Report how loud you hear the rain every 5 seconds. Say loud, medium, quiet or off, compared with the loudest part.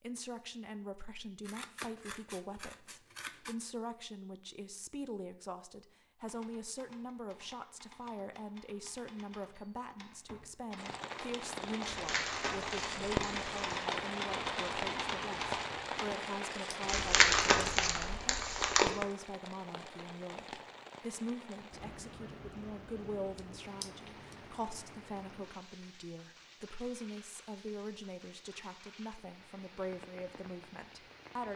off, off, loud, loud, medium, quiet, quiet.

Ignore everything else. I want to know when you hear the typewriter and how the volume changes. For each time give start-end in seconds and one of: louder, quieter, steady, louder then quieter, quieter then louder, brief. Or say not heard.
6.2-16.1 louder.